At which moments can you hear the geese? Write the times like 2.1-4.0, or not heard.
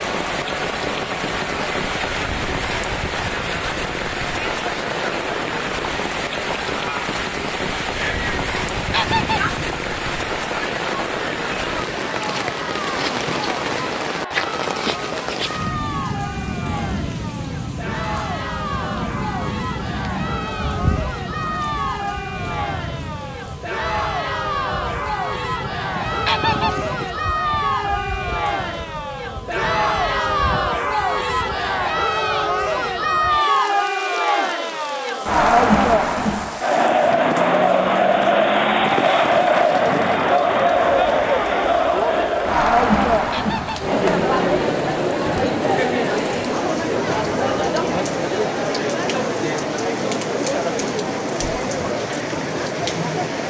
8.6-9.8, 25.9-27.1, 43.1-44.0.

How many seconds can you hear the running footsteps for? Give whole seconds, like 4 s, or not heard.
not heard.